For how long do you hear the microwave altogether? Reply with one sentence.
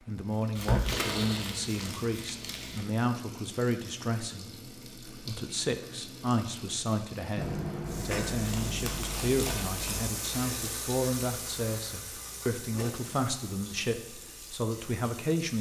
You can hear the microwave for 3 seconds altogether.